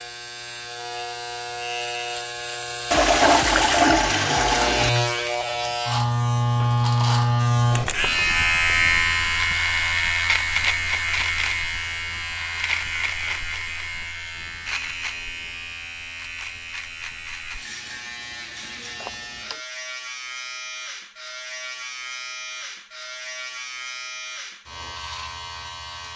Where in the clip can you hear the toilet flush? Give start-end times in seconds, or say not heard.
2.9-4.9, 19.0-19.6.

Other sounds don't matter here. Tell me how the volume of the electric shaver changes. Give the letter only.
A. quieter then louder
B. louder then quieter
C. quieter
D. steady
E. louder
B.